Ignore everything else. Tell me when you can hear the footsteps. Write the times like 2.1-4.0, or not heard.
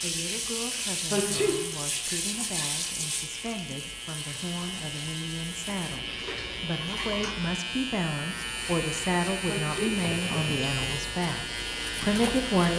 not heard.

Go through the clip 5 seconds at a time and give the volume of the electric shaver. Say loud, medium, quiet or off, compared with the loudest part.
medium, loud, loud.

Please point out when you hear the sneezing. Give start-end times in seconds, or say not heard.
1.1-1.6, 9.4-9.9.